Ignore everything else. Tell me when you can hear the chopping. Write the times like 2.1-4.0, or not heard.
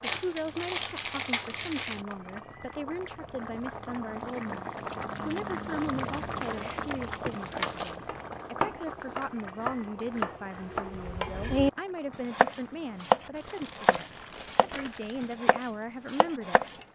8.1-11.7, 12.3-14.7, 15.4-16.7.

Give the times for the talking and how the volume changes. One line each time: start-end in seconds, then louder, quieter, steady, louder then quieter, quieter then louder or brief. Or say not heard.
0.0-16.6 steady.